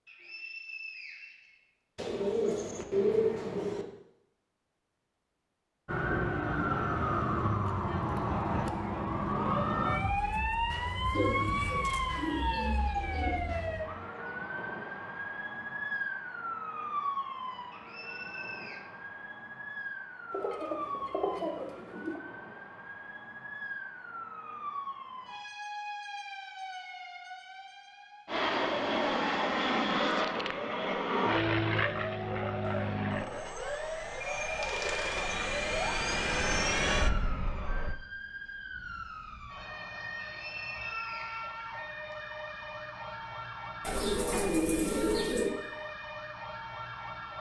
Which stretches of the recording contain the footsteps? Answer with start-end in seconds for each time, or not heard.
not heard.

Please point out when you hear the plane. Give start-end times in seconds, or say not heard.
28.2-38.0.